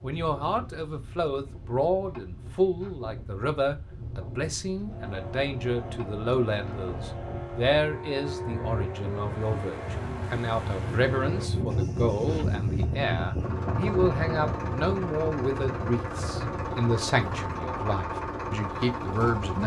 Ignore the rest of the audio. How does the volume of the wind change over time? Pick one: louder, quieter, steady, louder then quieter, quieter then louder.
louder then quieter.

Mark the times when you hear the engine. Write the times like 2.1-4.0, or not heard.
4.8-19.6.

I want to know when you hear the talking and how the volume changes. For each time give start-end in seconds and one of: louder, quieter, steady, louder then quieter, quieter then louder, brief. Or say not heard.
0.0-19.6 steady.